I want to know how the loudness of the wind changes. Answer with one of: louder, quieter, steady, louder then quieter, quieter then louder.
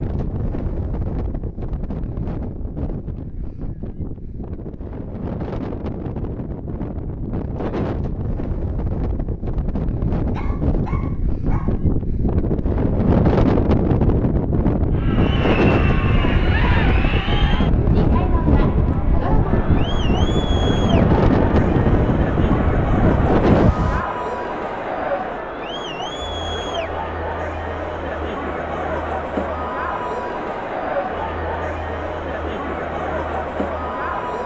louder.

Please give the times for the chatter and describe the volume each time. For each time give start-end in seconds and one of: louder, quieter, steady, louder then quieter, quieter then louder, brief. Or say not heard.
14.9-34.4 steady.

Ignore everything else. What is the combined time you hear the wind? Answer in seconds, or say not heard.
24 s.